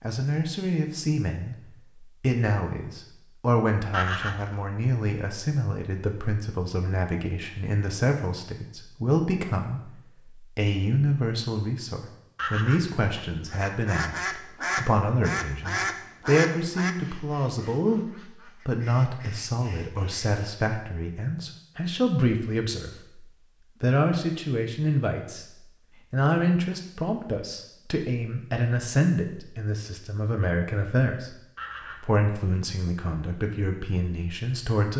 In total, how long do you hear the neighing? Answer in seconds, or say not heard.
2 s.